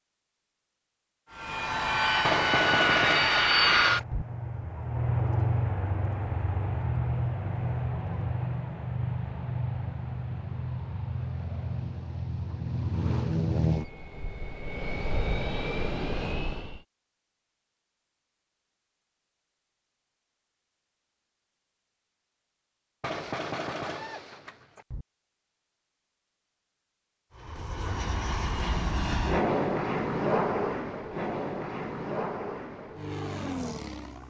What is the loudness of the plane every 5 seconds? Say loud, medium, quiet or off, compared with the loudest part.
loud, medium, medium, medium, off, medium, medium.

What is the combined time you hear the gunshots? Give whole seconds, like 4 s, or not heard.
4 s.